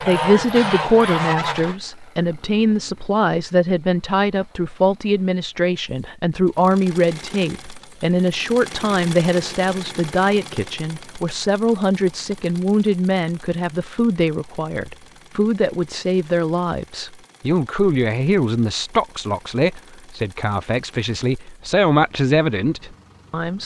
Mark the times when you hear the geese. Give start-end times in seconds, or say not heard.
0.0-1.8.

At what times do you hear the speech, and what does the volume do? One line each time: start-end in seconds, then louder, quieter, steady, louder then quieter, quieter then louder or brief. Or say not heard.
0.0-23.6 steady.